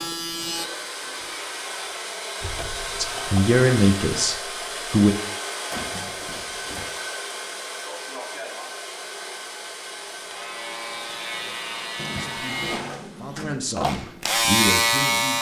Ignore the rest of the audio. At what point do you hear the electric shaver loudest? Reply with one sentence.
The volume of the electric shaver peaks at 15 seconds.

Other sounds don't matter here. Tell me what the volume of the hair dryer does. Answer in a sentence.
The loudness of the hair dryer goes down.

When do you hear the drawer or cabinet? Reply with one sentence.
The drawer or cabinet can be heard from 2.4 to 3.0 s, from 5.7 to 6.9 s and from 11.9 to 13.7 s.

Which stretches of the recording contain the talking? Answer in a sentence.
You can hear the talking from 3.0 to 5.2 s and from 12.2 to 15.3 s.